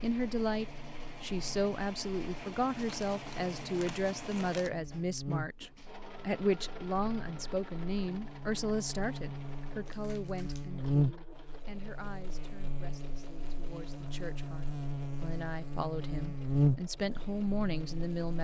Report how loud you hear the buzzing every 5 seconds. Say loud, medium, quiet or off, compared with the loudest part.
quiet, medium, loud, loud.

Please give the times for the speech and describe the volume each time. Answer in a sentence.
The speech can be heard from 0.0 to 18.3 s, getting quieter then louder.